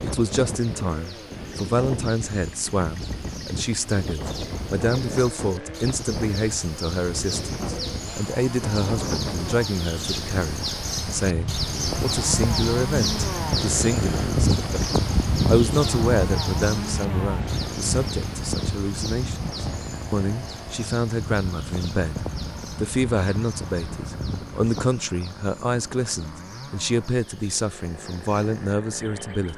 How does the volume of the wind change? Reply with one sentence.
The loudness of the wind goes up, then down.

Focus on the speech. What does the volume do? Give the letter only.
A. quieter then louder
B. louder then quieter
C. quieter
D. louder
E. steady
E.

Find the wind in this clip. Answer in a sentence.
You can hear the wind from 0.0 to 24.9 s.